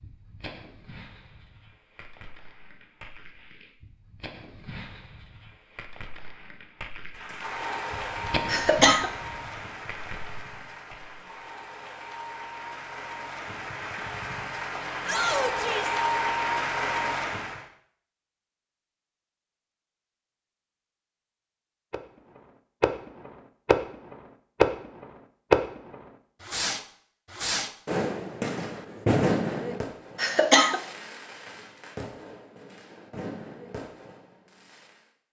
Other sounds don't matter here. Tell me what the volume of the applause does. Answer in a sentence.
The volume of the applause goes down, then up.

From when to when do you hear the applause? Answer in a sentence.
You can hear the applause from 7.1 to 17.6 s.